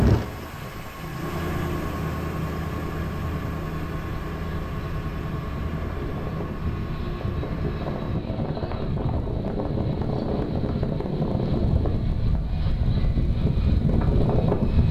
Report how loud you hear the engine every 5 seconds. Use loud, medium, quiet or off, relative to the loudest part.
loud, medium, off.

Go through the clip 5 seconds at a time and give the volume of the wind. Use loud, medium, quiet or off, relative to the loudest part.
quiet, medium, loud.